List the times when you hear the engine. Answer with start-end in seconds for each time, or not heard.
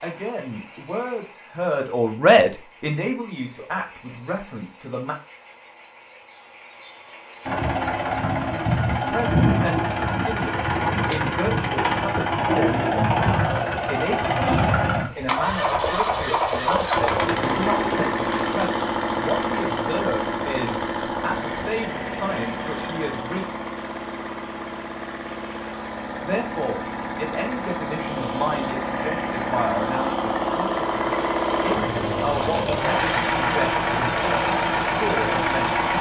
7.5-35.9.